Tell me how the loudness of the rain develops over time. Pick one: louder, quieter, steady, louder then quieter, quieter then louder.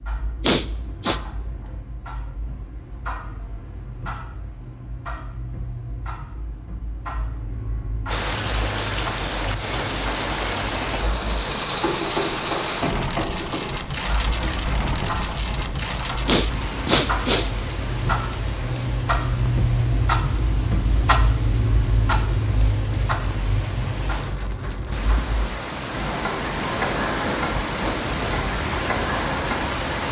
quieter then louder.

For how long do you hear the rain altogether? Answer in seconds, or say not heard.
22 s.